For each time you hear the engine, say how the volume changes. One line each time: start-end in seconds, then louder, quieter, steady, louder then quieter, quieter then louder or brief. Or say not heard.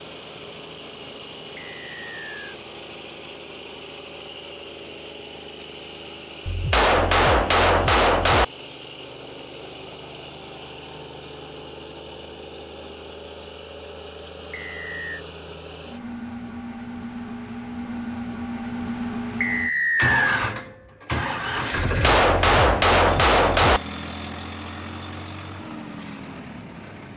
0.0-27.1 louder.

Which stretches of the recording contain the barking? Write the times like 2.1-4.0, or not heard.
not heard.